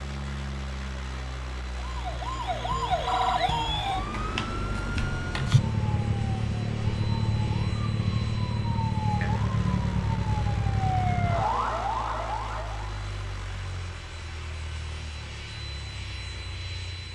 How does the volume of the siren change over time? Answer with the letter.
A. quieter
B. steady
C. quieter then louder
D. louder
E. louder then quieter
B.